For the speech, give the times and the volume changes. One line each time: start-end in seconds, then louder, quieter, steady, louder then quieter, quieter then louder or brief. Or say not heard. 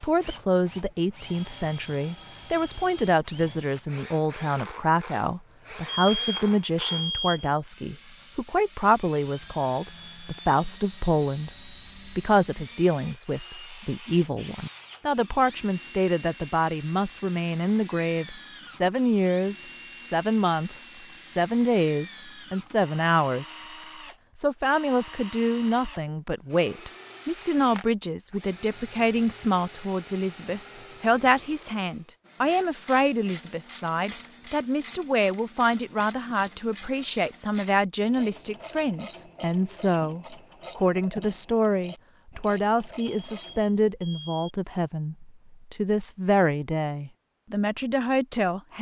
0.0-23.6 steady
24.4-48.7 steady.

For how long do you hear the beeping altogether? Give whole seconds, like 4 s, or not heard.
3 s.